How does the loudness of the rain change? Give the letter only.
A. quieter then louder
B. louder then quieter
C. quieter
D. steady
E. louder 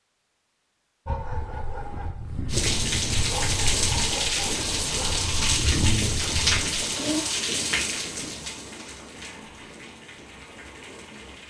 C.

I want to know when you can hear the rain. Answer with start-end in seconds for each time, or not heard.
2.5-11.4.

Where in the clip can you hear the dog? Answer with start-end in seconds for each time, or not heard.
1.1-7.2.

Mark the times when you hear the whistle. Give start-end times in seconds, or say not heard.
not heard.